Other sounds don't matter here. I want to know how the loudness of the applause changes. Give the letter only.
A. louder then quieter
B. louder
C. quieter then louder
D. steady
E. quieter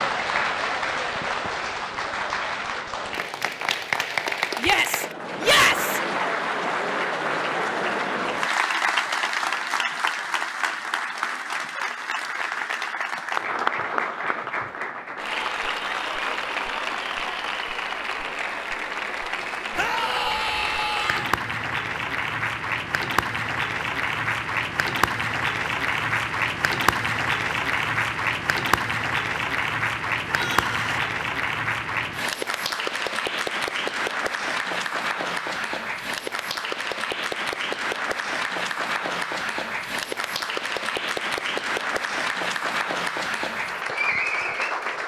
D.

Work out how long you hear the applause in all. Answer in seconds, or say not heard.
45 s.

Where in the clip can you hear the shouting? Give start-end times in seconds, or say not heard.
4.6-6.0, 19.8-21.4, 30.3-31.1.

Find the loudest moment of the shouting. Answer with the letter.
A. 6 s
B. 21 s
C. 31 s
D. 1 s
A.